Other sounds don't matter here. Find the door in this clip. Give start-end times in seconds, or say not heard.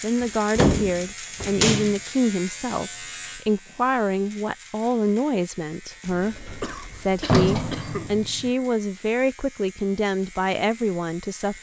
0.2-1.9, 6.1-8.5.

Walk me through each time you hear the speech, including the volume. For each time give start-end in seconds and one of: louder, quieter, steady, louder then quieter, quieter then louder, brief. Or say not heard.
0.0-11.5 steady.